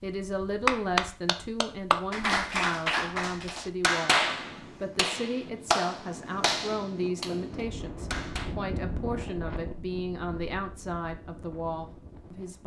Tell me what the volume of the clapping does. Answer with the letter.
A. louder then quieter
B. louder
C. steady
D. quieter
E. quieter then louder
D.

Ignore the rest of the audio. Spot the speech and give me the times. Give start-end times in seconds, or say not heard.
0.0-12.6.